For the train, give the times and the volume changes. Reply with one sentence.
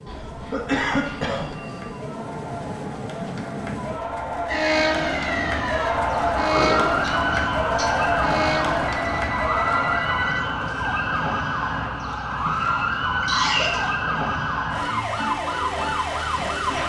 The train can be heard from 0.0 to 14.6 s, getting louder then quieter.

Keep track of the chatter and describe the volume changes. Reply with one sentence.
The loudness of the chatter goes up.